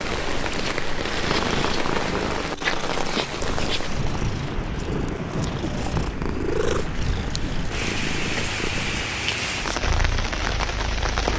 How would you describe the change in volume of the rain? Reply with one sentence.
The loudness of the rain stays about the same.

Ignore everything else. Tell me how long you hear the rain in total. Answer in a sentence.
The rain can be heard for 11 seconds in total.